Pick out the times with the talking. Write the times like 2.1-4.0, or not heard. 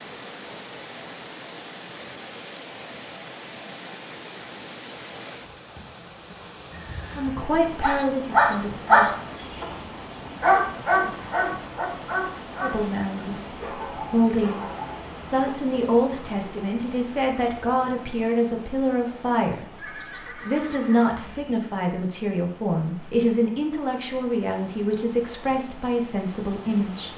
7.2-9.2, 12.6-14.7, 15.3-27.1.